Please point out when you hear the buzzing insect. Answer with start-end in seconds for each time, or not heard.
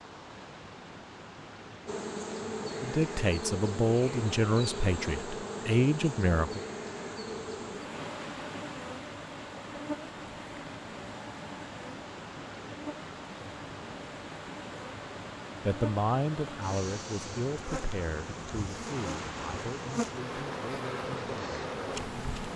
1.9-22.5.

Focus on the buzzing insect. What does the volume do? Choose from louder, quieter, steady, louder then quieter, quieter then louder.
quieter then louder.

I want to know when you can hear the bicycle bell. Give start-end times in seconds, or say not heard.
not heard.